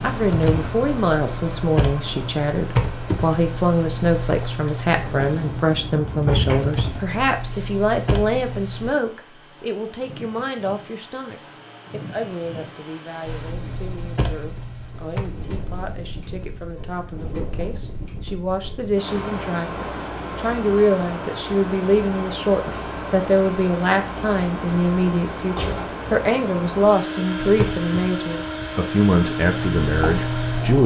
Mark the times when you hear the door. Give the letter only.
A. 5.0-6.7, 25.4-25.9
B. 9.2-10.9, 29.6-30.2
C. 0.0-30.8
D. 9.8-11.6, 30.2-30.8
A.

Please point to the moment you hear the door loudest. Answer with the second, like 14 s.
6 s.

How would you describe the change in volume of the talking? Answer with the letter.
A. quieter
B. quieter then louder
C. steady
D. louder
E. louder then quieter
B.